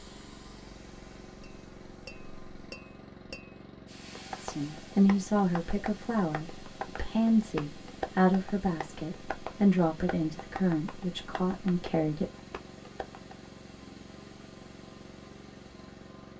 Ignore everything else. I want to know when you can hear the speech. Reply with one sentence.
The speech can be heard from 4.4 to 12.3 s.